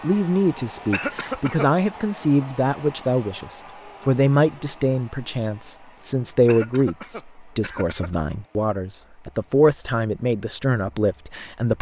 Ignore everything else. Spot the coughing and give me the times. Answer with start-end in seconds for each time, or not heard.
0.9-1.7, 6.5-8.1.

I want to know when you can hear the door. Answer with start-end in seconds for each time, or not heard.
not heard.